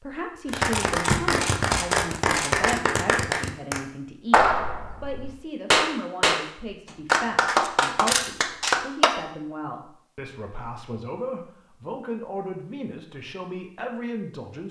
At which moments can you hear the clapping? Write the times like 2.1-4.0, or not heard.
0.5-6.5, 7.0-9.2.